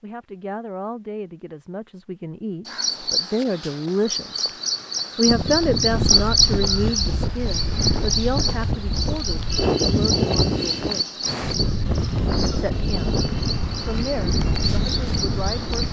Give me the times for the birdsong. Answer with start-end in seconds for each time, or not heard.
2.6-15.8.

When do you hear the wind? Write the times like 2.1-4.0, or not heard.
5.2-15.8.